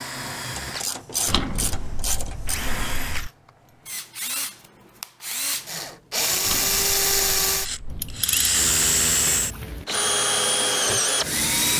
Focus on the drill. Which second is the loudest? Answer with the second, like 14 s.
9 s.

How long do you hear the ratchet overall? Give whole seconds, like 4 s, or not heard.
4 s.